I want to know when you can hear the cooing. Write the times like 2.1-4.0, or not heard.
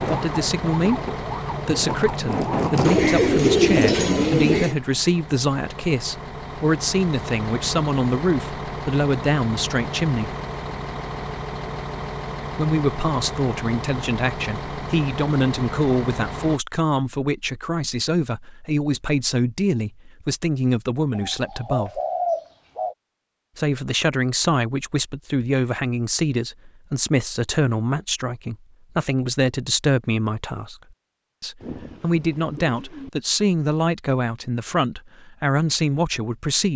2.9-4.8, 21.1-22.9, 31.6-33.1.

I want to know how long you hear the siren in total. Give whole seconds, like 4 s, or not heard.
3 s.